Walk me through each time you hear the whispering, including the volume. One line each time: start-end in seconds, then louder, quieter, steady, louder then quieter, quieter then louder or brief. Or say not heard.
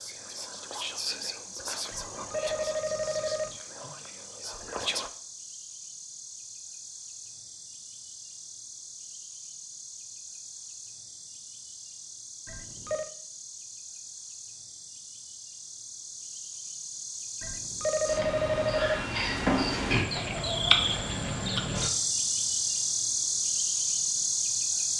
0.0-5.1 quieter.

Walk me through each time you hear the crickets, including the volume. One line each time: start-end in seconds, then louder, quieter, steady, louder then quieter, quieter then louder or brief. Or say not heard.
0.0-24.9 louder.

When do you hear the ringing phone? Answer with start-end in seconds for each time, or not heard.
1.9-3.6, 12.4-13.1, 17.4-19.1.